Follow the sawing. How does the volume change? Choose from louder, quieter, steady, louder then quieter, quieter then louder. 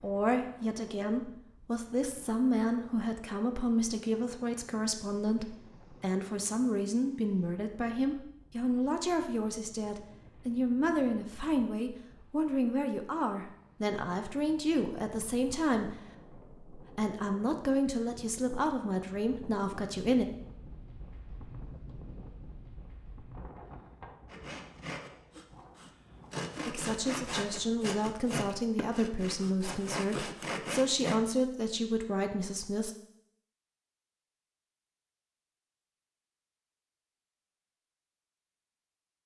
louder.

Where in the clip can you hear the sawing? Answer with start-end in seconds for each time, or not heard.
24.2-31.2.